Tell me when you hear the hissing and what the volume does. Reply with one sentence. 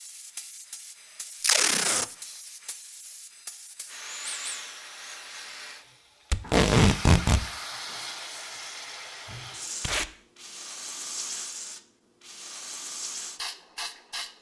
You can hear the hissing from 0.0 to 14.3 s, getting louder.